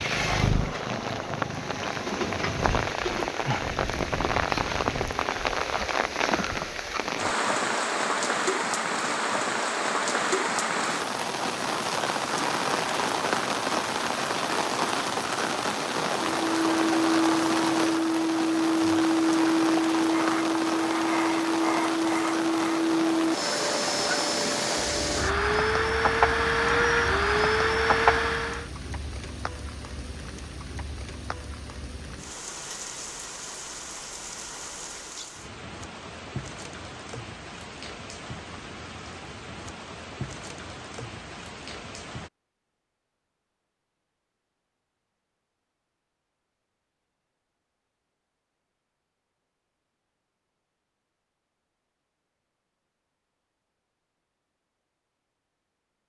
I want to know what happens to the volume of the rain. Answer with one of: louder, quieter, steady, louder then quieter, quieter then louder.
quieter.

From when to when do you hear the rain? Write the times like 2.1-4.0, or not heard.
0.0-42.3.